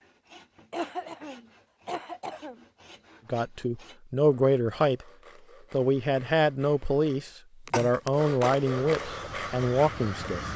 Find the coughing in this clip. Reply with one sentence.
You can hear the coughing from 0.7 to 2.6 s and from 7.7 to 8.5 s.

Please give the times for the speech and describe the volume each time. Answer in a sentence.
The speech can be heard briefly from 3.2 to 5.0 s; and from 5.7 to 10.5 s, at a steady volume.